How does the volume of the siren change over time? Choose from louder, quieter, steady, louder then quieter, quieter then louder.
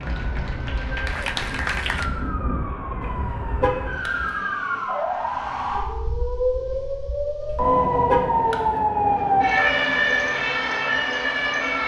louder.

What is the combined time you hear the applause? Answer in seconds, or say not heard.
2 s.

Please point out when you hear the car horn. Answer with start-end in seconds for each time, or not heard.
3.0-4.4, 7.5-8.8.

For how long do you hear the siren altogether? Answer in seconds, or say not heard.
12 s.